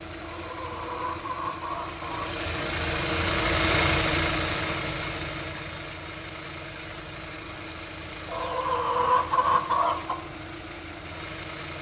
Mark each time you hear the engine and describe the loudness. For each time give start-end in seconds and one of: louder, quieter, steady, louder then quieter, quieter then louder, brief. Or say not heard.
0.0-11.7 louder then quieter.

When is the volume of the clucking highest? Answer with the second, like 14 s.
9 s.